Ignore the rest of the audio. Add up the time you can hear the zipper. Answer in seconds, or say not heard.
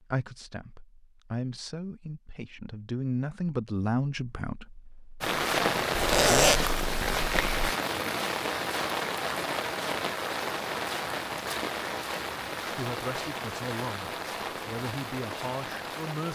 2 s.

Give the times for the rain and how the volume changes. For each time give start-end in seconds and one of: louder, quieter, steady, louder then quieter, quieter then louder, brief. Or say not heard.
5.2-16.3 quieter.